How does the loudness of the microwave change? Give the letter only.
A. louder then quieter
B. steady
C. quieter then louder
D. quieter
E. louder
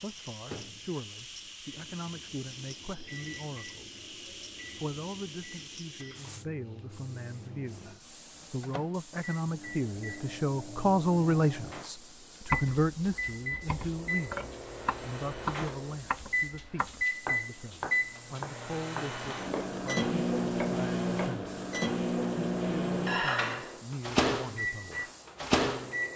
E.